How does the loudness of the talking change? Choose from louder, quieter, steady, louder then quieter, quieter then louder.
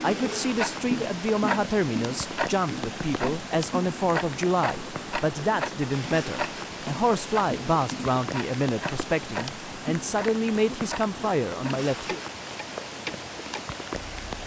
steady.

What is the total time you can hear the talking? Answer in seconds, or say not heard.
12 s.